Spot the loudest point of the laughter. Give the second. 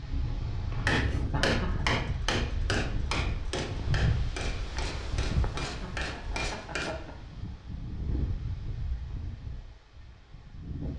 2 s.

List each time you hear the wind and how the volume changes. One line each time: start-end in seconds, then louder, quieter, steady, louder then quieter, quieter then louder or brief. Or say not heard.
0.0-10.9 quieter.